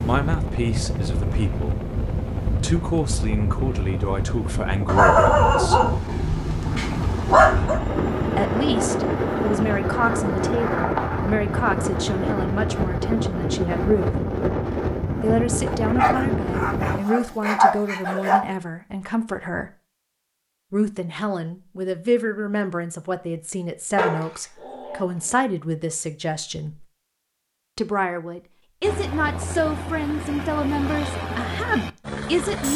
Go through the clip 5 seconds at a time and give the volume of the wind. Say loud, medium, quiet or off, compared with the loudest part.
medium, loud, loud, loud, off, off, off.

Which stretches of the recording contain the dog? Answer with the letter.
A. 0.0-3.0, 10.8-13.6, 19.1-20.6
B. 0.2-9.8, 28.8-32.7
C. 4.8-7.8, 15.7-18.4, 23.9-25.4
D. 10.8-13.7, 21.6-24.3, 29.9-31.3
C.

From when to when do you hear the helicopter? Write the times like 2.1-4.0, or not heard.
0.2-9.8, 28.8-32.7.